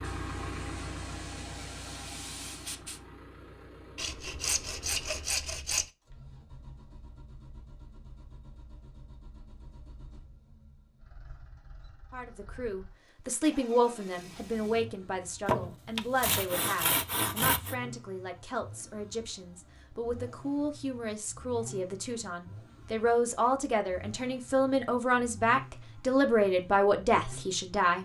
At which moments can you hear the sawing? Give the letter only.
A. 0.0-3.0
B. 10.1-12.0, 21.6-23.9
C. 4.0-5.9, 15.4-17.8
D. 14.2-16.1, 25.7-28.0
C.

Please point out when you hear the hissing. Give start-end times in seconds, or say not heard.
0.0-3.0.